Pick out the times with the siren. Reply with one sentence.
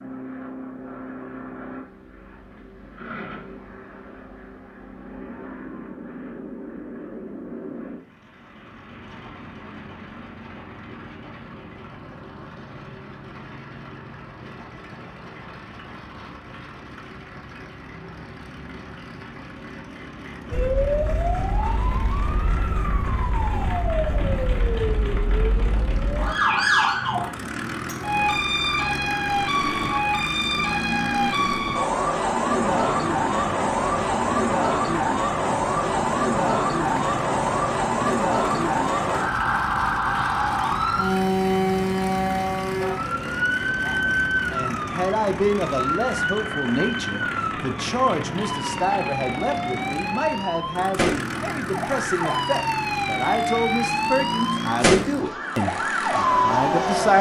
The siren can be heard from 20.5 to 57.1 s.